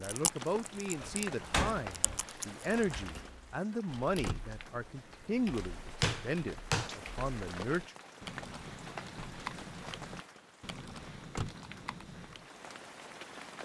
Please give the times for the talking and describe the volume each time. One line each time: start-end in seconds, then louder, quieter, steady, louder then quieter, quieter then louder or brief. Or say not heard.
0.0-8.0 steady.